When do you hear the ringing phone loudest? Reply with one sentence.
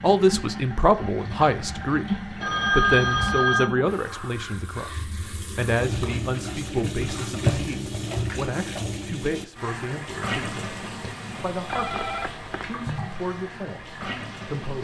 The loudest moment of the ringing phone is at 3 seconds.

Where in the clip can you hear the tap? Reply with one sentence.
The tap can be heard from 0.0 to 14.7 s.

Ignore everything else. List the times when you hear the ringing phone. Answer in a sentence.
You can hear the ringing phone from 2.4 to 3.7 s and from 11.7 to 12.8 s.